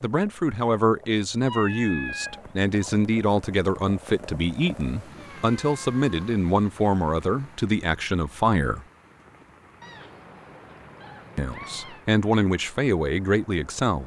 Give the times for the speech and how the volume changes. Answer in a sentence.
The speech can be heard from 0.0 to 8.8 s, at a steady volume; and briefly from 11.3 to 14.0 s.